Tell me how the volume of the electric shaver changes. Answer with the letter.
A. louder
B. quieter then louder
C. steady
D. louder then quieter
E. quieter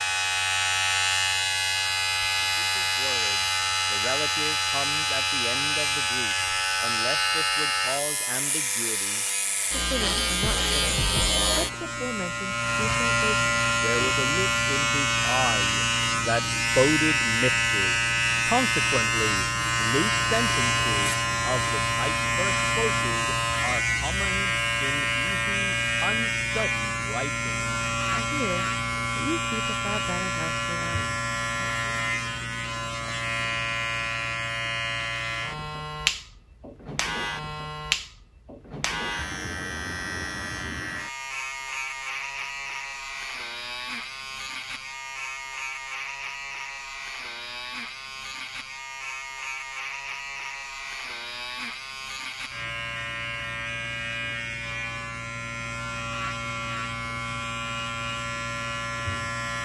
E.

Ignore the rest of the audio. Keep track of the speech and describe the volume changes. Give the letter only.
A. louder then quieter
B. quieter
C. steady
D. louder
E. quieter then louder
A.